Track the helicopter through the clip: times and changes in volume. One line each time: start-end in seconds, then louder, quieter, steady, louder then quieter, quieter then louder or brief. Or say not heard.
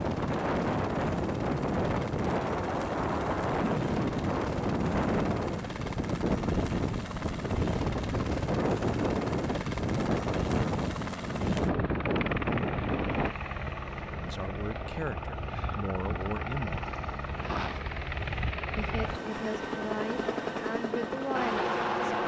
0.0-22.2 louder.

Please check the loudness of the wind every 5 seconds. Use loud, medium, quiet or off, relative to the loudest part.
loud, loud, loud, off, off.